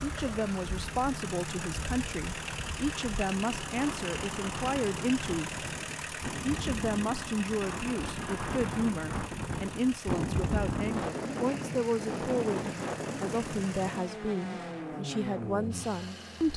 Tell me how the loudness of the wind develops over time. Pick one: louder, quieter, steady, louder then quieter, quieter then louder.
louder.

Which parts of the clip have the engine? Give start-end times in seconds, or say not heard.
0.0-16.5.